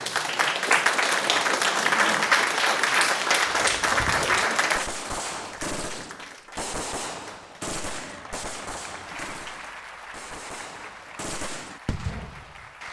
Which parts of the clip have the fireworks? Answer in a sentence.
You can hear the fireworks from 3.6 to 12.7 s.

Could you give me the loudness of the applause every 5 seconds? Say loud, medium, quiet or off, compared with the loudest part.
loud, quiet, quiet.